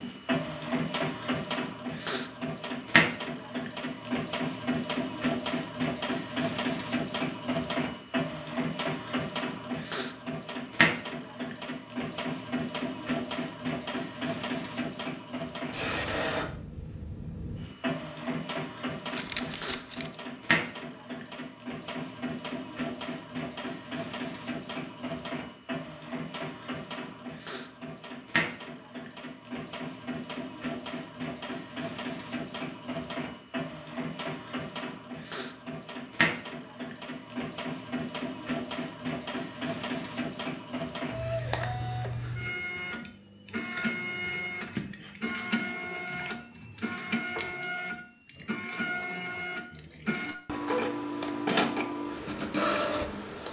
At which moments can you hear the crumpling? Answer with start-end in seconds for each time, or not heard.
19.1-20.1.